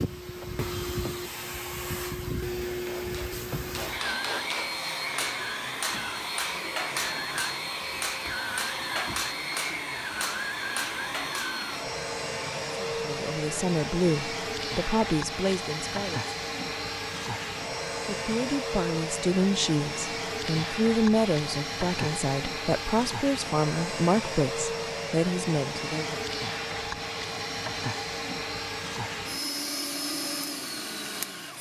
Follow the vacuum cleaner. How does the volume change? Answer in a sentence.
The loudness of the vacuum cleaner stays about the same.